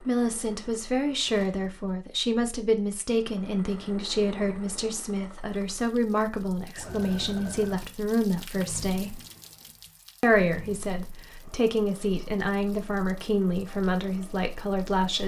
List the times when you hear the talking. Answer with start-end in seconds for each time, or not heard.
0.0-9.2, 10.2-15.2.